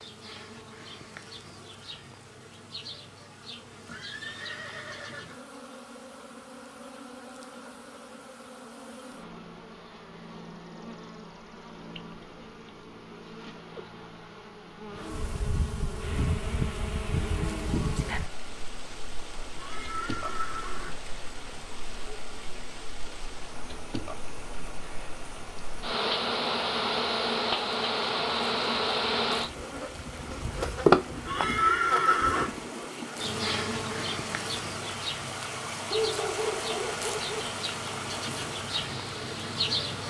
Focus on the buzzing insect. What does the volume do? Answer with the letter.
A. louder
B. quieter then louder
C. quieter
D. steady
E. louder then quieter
E.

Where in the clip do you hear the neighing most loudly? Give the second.
32 s.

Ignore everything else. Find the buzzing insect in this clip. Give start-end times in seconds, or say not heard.
0.0-40.0.